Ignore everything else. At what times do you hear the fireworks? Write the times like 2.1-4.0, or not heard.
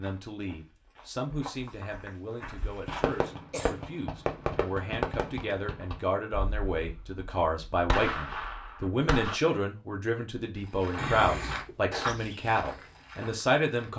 2.9-9.3.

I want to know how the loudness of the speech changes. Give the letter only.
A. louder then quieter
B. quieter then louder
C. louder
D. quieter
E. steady
C.